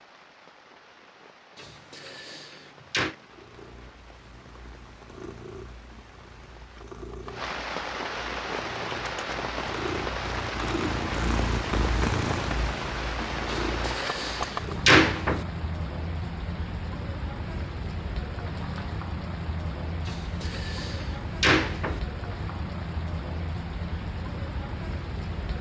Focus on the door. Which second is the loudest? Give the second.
15 s.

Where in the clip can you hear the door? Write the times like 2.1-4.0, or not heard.
1.6-3.1, 13.5-15.4, 20.1-22.0.